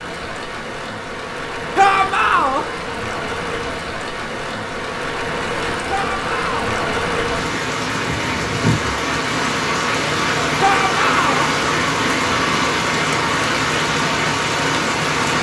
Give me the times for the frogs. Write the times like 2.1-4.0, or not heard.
not heard.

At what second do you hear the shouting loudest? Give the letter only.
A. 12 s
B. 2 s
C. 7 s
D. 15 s
B.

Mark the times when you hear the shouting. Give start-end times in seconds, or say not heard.
1.8-2.6, 5.8-6.8, 10.6-11.5.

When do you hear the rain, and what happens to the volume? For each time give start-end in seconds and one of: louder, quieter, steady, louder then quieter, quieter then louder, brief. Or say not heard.
0.0-15.3 louder.